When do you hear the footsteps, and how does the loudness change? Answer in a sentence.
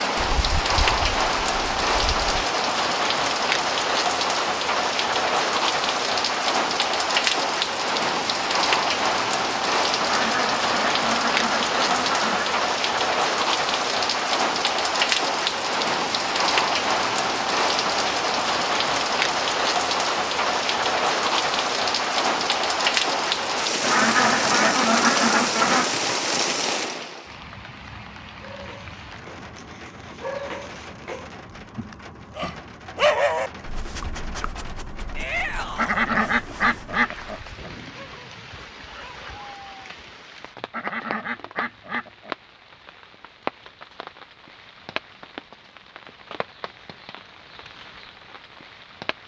You can't hear the footsteps here.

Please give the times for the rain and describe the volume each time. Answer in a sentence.
You can hear the rain from 0.0 to 49.2 s, getting quieter.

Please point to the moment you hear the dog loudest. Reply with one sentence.
The volume of the dog peaks at 33 seconds.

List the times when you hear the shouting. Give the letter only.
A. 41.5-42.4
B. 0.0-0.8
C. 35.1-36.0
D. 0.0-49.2
C.